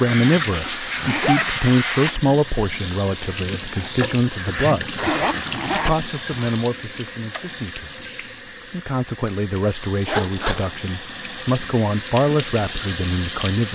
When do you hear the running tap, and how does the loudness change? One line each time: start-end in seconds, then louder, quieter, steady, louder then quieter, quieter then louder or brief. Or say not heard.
0.0-13.6 quieter then louder.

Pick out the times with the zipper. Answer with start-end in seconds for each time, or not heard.
1.0-1.4, 5.0-6.7, 10.1-10.8.